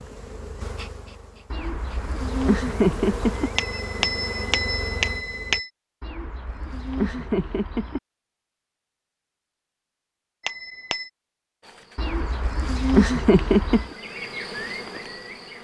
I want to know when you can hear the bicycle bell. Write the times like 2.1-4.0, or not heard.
3.5-5.7, 10.4-11.1.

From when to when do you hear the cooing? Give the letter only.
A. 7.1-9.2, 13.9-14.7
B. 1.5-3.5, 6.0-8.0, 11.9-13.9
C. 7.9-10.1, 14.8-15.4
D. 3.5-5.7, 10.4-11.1
B.